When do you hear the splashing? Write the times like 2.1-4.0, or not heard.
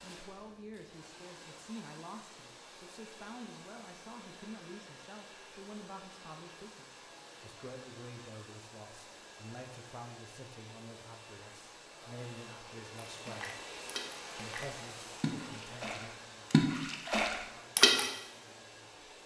13.2-18.1.